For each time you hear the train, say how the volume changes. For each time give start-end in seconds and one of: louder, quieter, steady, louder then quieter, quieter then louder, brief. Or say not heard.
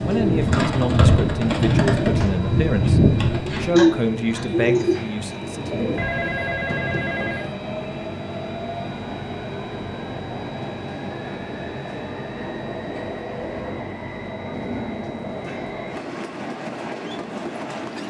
0.0-18.0 steady.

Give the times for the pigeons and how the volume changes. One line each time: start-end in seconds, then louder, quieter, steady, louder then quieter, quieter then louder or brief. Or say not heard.
0.0-6.0 steady.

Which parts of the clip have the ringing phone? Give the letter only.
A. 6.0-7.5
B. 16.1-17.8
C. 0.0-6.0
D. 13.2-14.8
A.